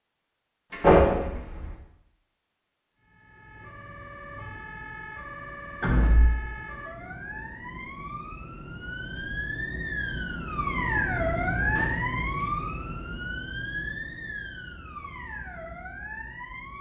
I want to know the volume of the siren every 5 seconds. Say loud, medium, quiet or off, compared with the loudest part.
quiet, medium, loud, medium.